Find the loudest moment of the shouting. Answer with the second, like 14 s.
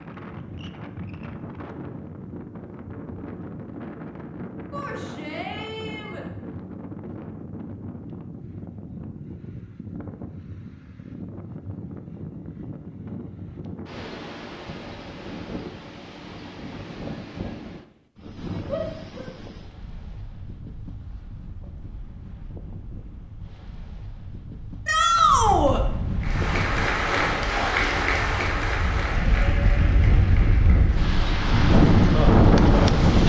25 s.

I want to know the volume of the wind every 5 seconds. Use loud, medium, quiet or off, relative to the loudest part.
quiet, quiet, quiet, quiet, quiet, quiet, loud.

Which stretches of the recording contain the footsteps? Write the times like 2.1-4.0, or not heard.
not heard.